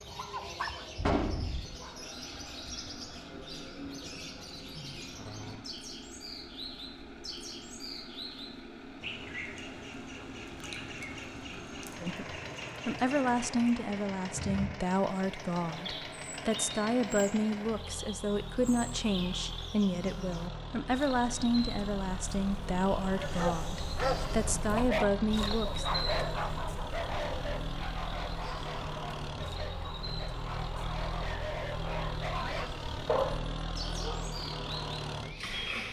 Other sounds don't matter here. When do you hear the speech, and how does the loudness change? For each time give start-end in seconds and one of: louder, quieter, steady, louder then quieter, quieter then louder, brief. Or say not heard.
12.0-25.9 steady.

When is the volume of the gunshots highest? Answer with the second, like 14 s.
1 s.